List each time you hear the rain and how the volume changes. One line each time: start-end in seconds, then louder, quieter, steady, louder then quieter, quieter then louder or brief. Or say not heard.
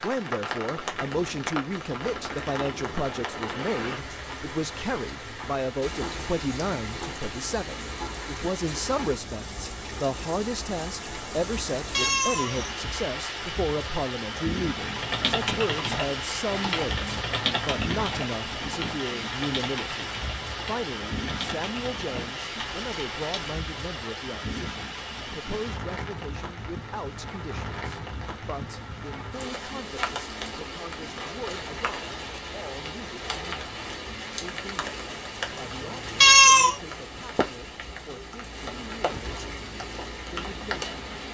0.0-41.3 steady.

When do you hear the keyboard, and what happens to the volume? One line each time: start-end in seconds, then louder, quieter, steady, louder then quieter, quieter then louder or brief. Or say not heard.
14.8-23.6 quieter.